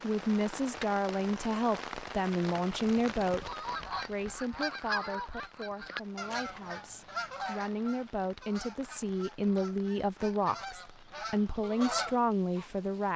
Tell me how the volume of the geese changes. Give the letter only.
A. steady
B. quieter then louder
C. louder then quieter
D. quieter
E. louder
B.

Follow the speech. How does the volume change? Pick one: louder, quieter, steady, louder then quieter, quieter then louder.
quieter then louder.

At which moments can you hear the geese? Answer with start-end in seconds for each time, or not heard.
3.2-12.8.